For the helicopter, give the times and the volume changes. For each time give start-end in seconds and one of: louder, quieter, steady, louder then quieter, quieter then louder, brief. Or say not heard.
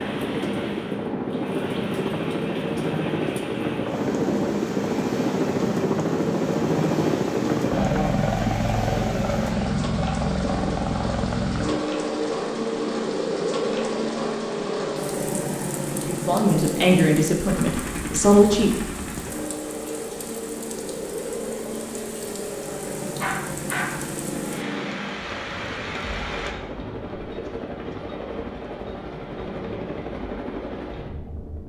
0.0-31.6 quieter.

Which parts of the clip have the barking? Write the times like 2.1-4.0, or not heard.
23.1-24.1.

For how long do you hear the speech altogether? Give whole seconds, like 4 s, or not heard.
3 s.